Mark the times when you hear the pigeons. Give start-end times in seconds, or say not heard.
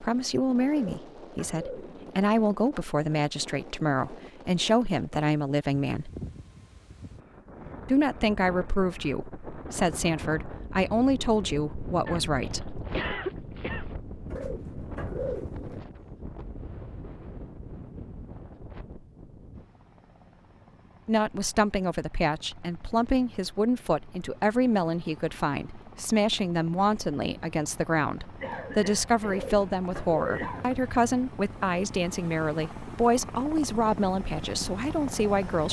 0.7-2.0, 14.2-15.8, 29.2-30.8.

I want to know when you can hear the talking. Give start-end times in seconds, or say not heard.
0.0-6.1, 7.8-12.8, 21.1-35.6.